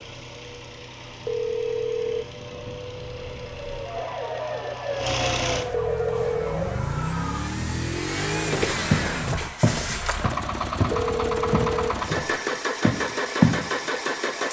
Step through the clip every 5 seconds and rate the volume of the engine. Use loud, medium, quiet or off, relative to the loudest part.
quiet, loud, loud.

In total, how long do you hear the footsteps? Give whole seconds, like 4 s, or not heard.
5 s.